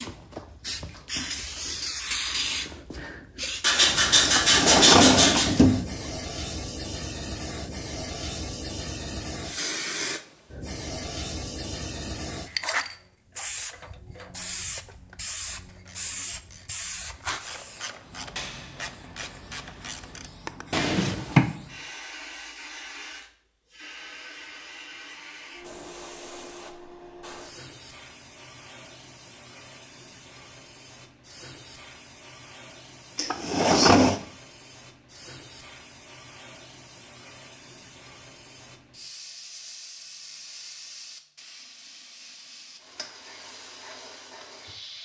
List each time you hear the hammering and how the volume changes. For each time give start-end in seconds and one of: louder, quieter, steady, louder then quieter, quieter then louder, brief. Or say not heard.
not heard.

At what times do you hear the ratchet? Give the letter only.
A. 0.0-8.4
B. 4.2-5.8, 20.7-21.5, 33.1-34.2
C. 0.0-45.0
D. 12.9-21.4
D.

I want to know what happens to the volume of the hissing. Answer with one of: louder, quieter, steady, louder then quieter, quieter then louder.
quieter.